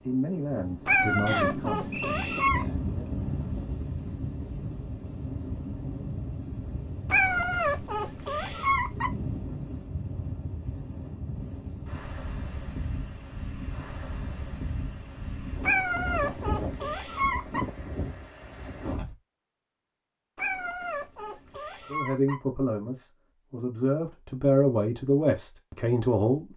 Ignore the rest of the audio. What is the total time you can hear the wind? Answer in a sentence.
The wind can be heard for 19 seconds in total.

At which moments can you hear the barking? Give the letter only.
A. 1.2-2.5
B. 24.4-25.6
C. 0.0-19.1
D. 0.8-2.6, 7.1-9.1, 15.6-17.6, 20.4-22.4
D.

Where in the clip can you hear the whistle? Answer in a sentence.
You can hear the whistle from 1.2 to 2.5 s.